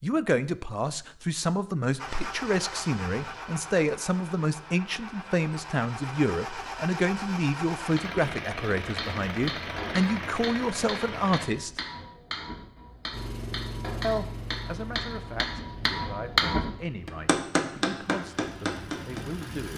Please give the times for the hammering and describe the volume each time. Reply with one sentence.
The hammering can be heard from 8.0 to 19.5 s, getting louder.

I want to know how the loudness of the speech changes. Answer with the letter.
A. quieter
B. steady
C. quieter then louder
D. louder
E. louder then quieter
A.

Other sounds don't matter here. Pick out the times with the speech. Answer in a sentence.
You can hear the speech from 0.0 to 11.8 s and from 14.0 to 19.7 s.